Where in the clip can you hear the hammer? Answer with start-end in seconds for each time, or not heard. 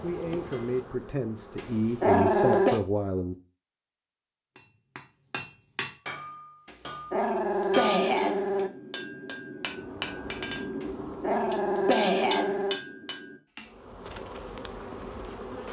4.5-14.2.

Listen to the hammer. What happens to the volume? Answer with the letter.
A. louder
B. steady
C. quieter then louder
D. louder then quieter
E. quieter
B.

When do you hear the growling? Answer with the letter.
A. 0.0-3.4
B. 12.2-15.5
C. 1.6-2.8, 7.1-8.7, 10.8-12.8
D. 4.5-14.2
C.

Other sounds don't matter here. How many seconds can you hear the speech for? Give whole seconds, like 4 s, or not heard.
3 s.